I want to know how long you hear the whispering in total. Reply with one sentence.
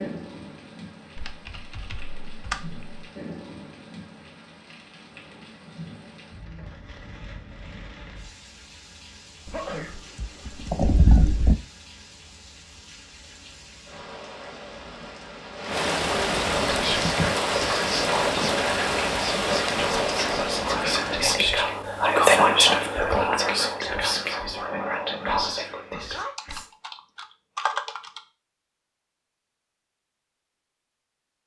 The whispering can be heard for 10 seconds in total.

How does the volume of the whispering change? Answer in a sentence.
The loudness of the whispering goes up, then down.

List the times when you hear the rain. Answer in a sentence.
You can hear the rain from 0.0 to 21.4 s.